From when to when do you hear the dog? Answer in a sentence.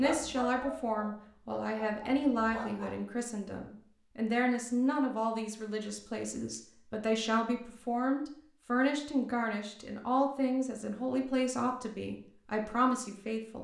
The dog can be heard from 0.0 to 2.9 s.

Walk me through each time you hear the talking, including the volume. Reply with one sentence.
The talking can be heard from 0.0 to 13.6 s, at a steady volume.